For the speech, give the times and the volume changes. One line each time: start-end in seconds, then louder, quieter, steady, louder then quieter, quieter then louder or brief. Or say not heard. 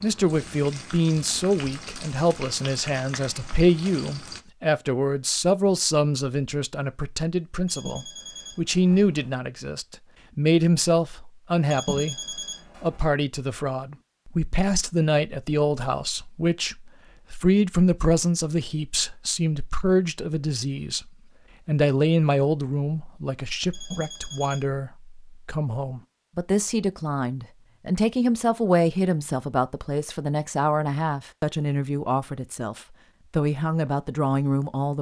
0.0-34.9 steady.